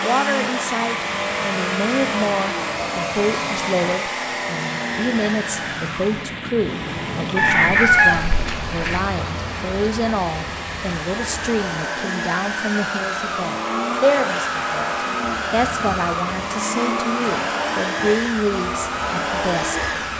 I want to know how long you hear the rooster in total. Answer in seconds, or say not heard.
2 s.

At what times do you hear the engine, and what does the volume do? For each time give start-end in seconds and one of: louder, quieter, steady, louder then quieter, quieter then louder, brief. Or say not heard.
0.0-20.1 quieter then louder.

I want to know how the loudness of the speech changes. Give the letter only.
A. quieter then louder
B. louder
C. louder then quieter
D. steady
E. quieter
D.